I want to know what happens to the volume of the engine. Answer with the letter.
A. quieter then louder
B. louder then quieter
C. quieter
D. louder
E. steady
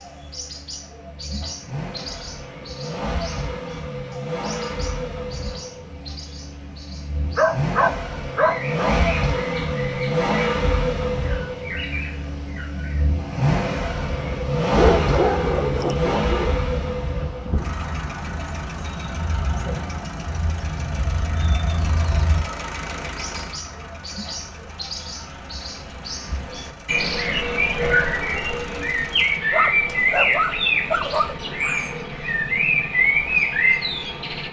B.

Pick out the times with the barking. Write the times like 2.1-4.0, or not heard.
7.3-8.9, 14.8-16.6, 29.5-31.4.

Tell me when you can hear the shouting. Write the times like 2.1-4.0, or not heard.
not heard.